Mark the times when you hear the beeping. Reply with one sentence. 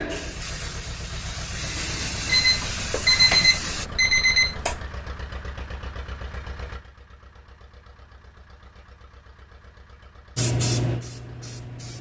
The beeping can be heard from 2.2 to 4.8 s.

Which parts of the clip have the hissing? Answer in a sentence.
The hissing can be heard from 0.0 to 3.9 s and from 10.3 to 11.9 s.